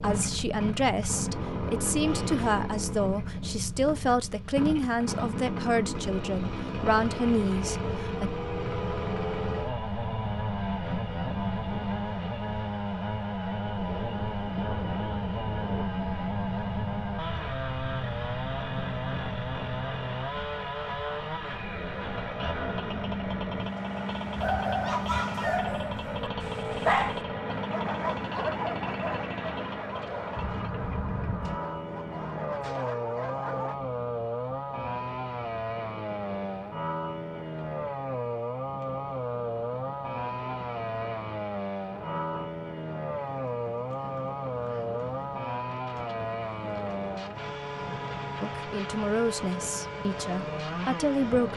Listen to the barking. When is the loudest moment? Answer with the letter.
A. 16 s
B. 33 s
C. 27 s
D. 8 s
C.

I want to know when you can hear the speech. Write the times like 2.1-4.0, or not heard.
0.0-8.3, 48.4-51.5.